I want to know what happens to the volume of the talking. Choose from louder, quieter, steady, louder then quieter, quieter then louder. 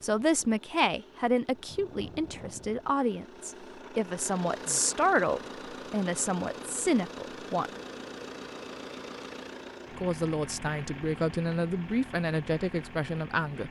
steady.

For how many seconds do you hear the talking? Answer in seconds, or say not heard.
11 s.